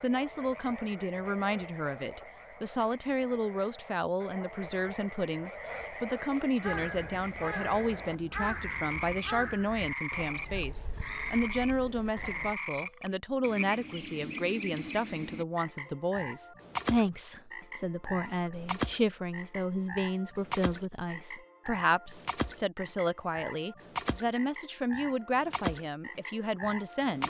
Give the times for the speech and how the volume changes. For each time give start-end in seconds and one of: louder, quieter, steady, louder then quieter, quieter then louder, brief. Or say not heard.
0.0-27.2 steady.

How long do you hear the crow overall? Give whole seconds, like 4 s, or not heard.
6 s.